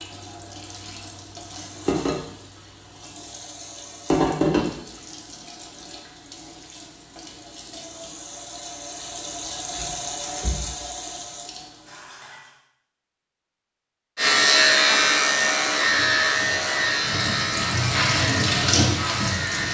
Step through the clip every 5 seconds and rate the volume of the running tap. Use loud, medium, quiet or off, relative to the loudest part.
loud, medium, medium, loud.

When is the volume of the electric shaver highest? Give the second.
15 s.